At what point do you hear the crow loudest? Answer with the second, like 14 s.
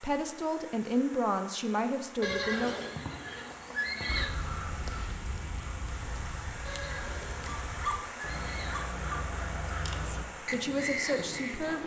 11 s.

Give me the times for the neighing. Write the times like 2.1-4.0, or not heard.
2.2-4.3, 6.7-8.8.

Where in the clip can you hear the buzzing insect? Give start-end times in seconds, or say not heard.
not heard.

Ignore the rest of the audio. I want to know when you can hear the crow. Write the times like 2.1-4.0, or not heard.
4.0-11.8.